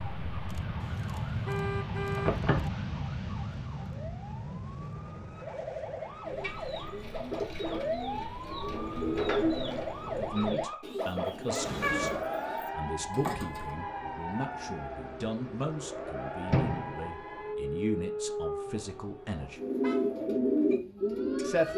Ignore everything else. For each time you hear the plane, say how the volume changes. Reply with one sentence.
The plane can be heard from 0.0 to 10.3 s, getting quieter.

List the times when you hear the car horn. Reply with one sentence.
The car horn can be heard from 0.8 to 2.4 s, from 11.7 to 12.2 s and from 18.6 to 20.1 s.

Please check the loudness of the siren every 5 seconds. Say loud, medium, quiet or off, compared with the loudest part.
quiet, loud, loud, loud, medium.